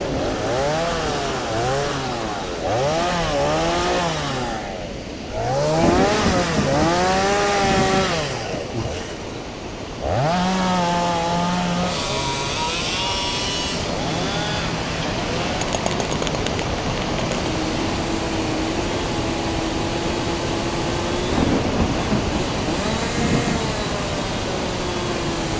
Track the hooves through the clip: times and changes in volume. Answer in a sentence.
The hooves can't be heard in this clip.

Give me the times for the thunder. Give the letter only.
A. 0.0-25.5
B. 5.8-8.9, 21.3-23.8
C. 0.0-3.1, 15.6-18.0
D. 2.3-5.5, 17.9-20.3
B.